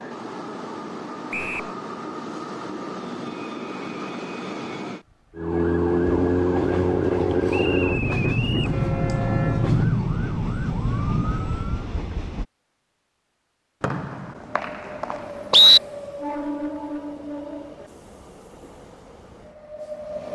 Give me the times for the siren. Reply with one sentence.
The siren can be heard from 5.3 to 11.9 s.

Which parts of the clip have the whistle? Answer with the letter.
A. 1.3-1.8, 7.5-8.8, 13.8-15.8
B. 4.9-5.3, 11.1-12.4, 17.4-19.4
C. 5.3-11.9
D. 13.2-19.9
A.